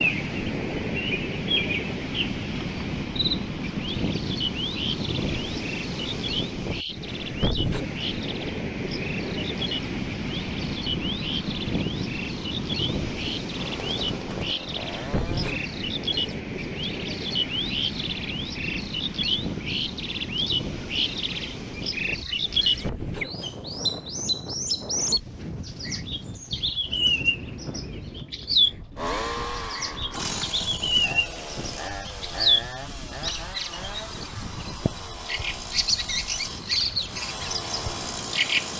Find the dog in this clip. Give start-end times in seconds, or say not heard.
not heard.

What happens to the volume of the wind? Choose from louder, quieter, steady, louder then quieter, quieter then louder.
quieter.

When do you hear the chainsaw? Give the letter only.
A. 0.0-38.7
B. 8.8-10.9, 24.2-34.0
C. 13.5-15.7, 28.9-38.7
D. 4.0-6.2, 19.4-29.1
C.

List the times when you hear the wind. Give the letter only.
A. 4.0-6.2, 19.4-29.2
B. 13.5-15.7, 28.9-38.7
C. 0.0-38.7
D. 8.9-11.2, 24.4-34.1
C.